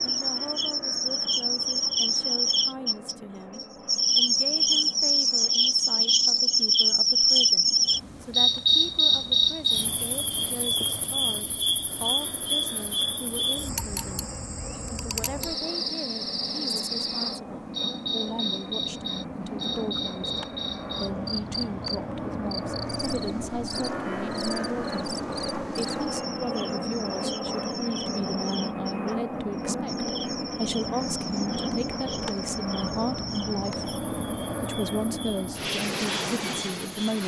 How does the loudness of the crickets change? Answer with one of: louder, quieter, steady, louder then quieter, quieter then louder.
quieter.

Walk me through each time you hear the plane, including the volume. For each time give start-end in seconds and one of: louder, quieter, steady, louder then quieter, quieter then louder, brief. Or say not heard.
0.0-37.2 louder.